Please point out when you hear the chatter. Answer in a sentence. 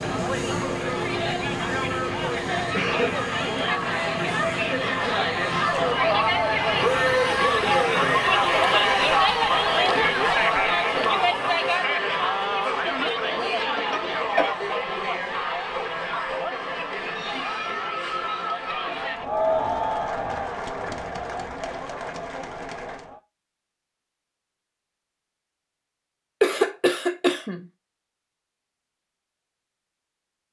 The chatter can be heard from 0.0 to 23.2 s.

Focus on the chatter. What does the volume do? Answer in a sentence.
The volume of the chatter goes up, then down.